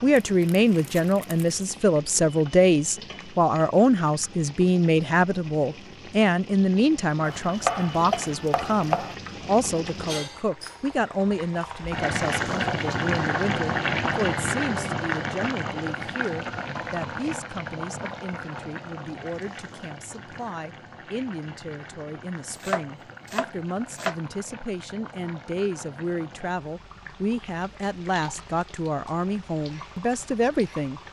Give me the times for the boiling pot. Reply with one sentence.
You can hear the boiling pot from 0.0 to 31.0 s.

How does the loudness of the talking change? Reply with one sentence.
The loudness of the talking goes down, then up.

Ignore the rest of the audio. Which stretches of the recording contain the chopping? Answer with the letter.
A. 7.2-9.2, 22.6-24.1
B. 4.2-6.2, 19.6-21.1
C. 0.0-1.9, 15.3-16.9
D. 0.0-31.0
A.